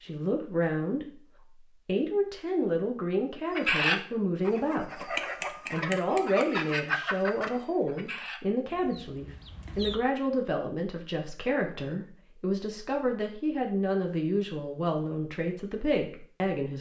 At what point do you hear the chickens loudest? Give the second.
4 s.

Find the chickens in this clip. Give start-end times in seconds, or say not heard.
3.5-10.0.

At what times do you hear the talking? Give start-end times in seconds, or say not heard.
0.0-1.2, 1.9-5.0, 5.7-16.7.